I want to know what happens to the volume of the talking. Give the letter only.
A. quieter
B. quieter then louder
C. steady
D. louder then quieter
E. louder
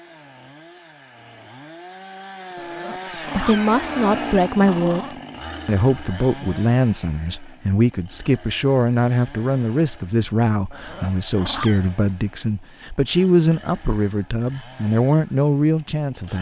C.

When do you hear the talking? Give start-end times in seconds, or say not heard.
3.3-16.3.